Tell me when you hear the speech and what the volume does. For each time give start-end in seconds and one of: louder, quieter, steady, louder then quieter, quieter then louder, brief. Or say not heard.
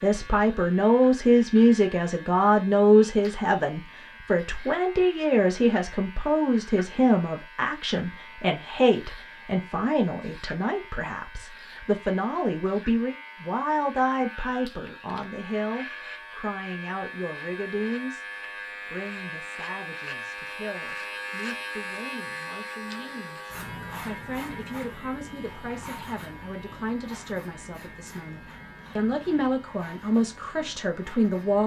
0.0-18.2 quieter
18.9-31.6 louder.